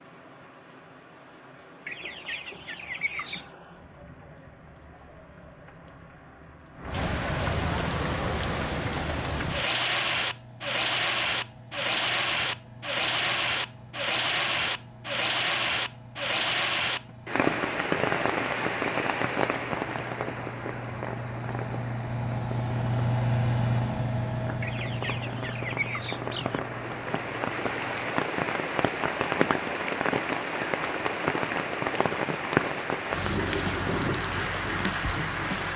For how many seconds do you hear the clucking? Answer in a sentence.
The clucking can be heard for 4 seconds in total.